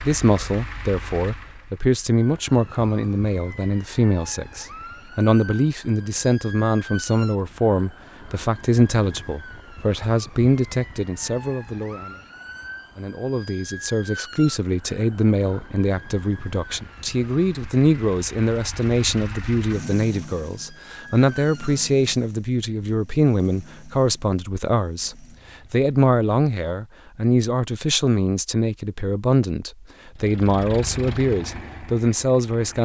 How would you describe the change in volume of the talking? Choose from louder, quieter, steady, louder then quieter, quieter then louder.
steady.